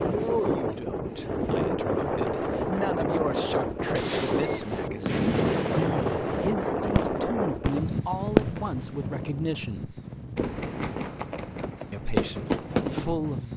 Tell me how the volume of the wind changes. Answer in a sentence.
The loudness of the wind goes down.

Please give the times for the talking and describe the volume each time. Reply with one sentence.
The talking can be heard from 0.1 to 9.9 s, getting louder; and briefly from 11.9 to 13.5 s.